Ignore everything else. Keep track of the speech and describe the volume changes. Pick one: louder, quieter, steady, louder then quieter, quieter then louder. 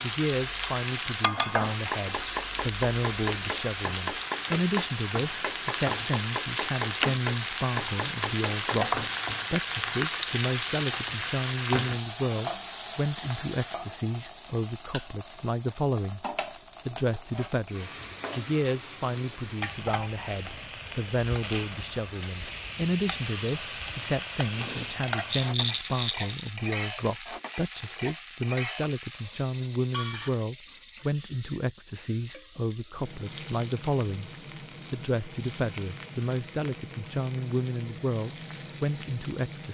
steady.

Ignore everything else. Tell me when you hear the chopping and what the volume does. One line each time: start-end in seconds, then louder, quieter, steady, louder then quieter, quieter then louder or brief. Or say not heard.
1.9-8.8 steady.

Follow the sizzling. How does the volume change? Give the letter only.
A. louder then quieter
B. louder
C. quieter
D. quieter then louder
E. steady
C.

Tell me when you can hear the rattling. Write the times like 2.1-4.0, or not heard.
25.3-26.4.